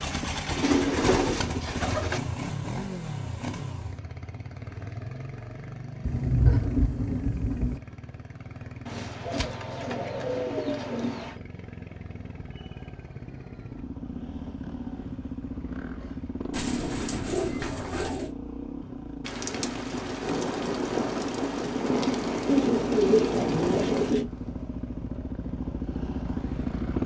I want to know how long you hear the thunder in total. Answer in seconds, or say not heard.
7 s.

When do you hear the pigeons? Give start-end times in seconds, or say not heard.
0.5-2.2, 8.8-11.3, 16.5-18.3, 22.4-24.3.